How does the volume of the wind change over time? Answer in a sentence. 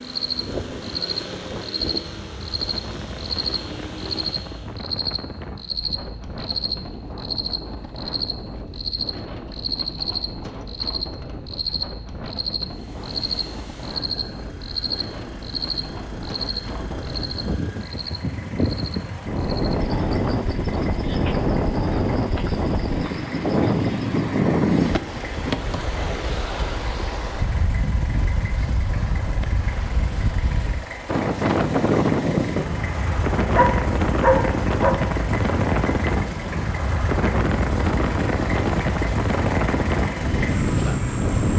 The volume of the wind goes up.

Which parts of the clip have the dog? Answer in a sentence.
You can hear the dog from 33.5 to 35.0 s.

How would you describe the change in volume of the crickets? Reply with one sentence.
The volume of the crickets goes down.